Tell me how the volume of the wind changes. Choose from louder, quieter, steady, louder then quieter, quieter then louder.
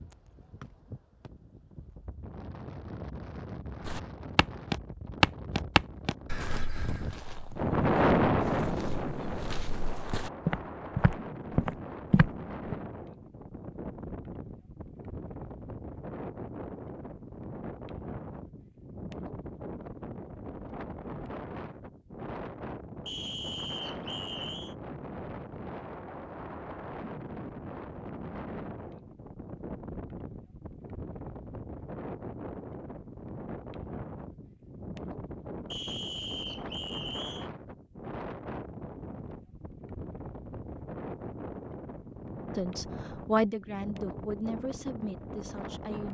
quieter.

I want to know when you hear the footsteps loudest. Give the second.
5 s.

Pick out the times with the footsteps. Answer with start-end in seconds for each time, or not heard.
3.8-12.8.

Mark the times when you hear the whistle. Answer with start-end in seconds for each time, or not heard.
0.6-1.3, 23.1-24.8, 35.7-37.5.